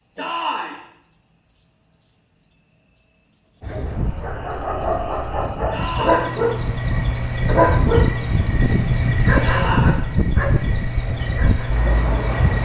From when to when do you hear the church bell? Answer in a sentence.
You can't hear the church bell here.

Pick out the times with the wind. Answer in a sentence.
You can hear the wind from 3.6 to 12.6 s.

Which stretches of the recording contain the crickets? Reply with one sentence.
The crickets can be heard from 0.0 to 12.6 s.